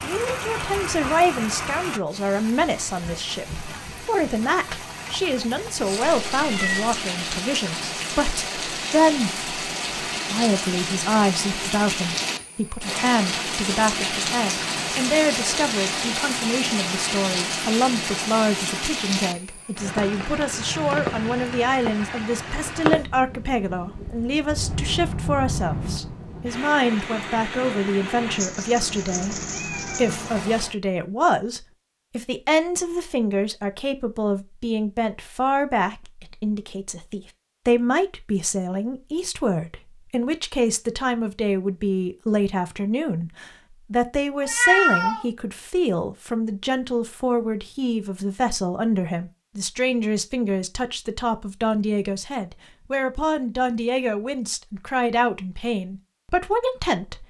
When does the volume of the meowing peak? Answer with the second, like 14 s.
45 s.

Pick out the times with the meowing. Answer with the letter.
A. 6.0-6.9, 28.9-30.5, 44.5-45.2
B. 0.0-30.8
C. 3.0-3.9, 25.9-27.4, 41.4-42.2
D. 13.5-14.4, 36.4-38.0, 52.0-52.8
A.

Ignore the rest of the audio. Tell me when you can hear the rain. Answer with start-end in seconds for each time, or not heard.
0.0-30.8.